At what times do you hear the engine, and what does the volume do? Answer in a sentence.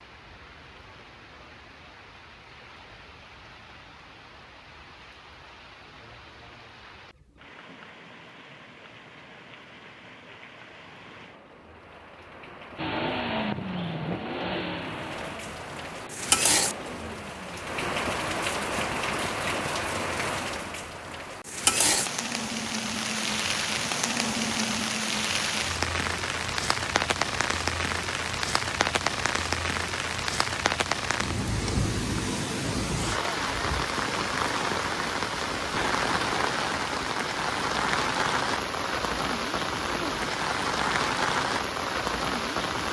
The engine can be heard from 12.8 to 17.6 s, getting quieter.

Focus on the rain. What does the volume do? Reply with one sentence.
The volume of the rain goes up.